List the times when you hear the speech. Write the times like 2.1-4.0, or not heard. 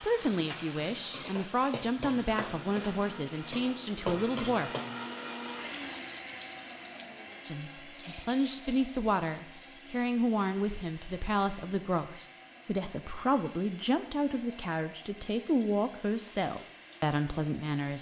0.0-4.7, 7.5-17.9.